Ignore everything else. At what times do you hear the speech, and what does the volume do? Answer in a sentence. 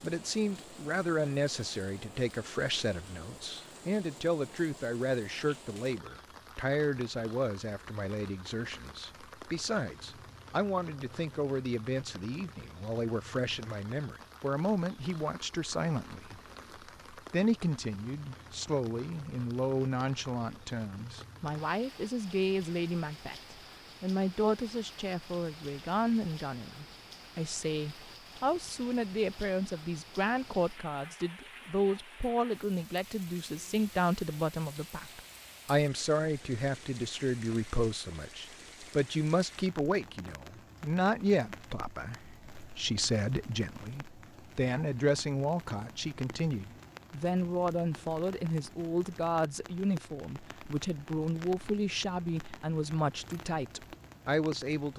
The speech can be heard from 0.0 to 16.4 s, at a steady volume; and from 17.1 to 54.9 s, at a steady volume.